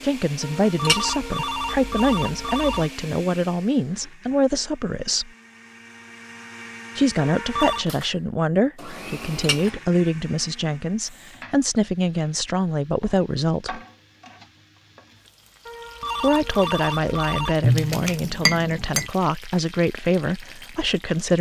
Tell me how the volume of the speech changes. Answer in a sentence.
The volume of the speech stays about the same.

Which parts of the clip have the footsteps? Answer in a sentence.
You can't hear the footsteps here.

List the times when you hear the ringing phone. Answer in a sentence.
The ringing phone can be heard from 0.4 to 2.9 s, from 7.2 to 7.8 s and from 15.7 to 17.6 s.